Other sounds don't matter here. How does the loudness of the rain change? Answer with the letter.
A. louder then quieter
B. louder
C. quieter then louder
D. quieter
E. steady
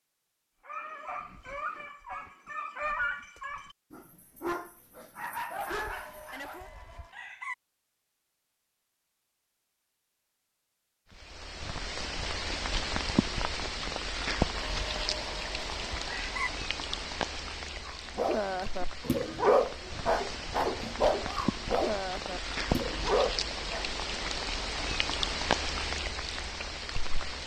C.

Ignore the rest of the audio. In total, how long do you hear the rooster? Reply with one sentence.
The rooster can be heard for 4 seconds in total.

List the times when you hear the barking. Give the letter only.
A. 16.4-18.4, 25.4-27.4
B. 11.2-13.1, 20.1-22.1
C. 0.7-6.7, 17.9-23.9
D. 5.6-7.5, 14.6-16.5
C.